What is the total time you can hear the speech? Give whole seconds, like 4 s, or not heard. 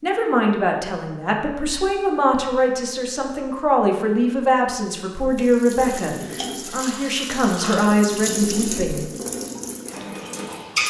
9 s.